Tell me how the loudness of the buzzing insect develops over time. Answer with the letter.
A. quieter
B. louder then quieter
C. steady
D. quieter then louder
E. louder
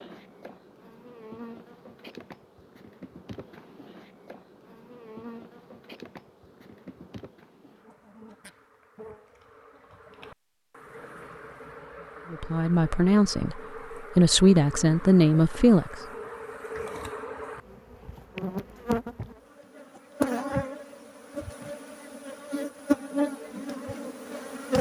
E.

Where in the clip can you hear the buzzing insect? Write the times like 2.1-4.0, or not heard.
0.0-24.7.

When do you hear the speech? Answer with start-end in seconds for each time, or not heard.
12.3-15.9.